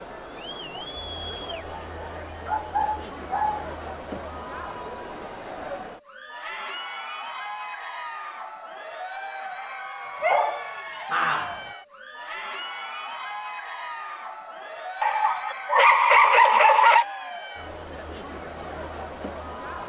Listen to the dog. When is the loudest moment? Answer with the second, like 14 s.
16 s.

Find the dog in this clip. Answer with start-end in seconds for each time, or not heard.
2.5-4.2, 10.2-11.6, 15.0-17.1.